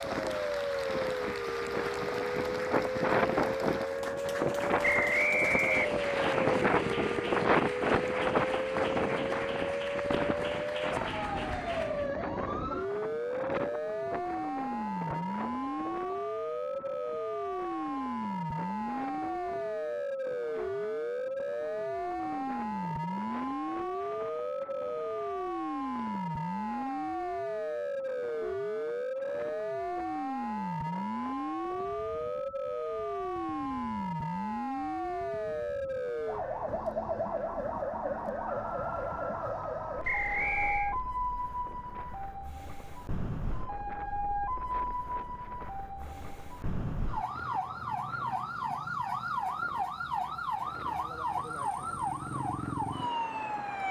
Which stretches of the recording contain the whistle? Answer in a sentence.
The whistle can be heard from 4.8 to 6.3 s and from 40.0 to 41.0 s.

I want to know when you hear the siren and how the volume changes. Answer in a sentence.
The siren can be heard from 0.0 to 53.8 s, at a steady volume.